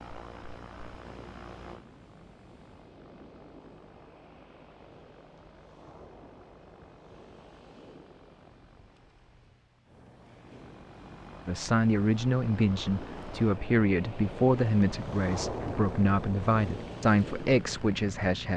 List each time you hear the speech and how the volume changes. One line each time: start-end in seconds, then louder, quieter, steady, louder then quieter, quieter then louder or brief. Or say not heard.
11.4-18.5 steady.